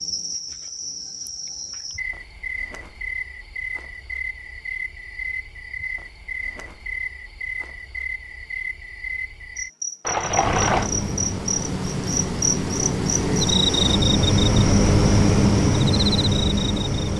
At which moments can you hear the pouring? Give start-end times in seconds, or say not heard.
10.1-10.9.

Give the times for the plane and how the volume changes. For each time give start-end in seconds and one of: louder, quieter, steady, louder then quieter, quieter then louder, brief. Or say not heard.
10.2-17.1 louder.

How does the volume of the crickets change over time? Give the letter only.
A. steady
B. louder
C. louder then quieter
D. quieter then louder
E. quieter
B.